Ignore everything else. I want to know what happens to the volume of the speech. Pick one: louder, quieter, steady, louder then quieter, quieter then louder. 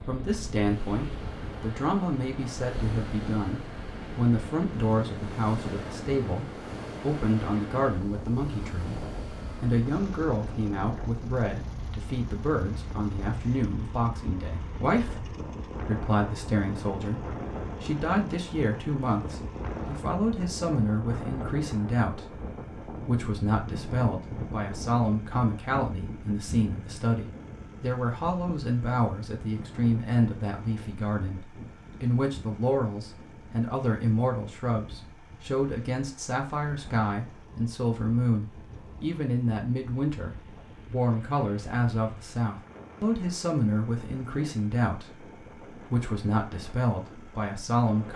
steady.